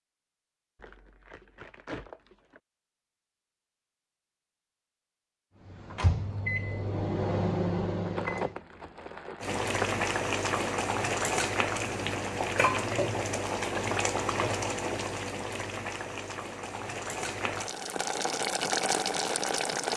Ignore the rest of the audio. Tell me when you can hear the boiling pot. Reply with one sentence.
You can hear the boiling pot from 9.4 to 19.9 s.